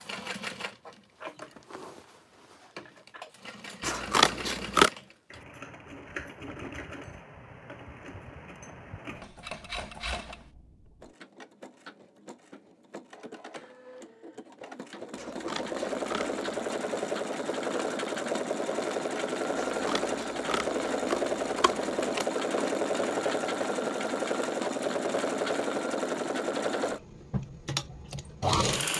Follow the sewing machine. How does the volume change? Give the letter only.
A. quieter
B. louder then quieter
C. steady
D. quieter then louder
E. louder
E.